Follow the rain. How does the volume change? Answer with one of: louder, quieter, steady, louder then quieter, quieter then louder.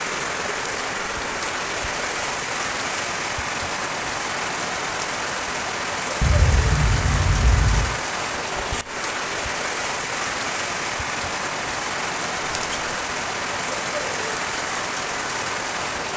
steady.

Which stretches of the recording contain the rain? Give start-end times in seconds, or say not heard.
0.0-16.1.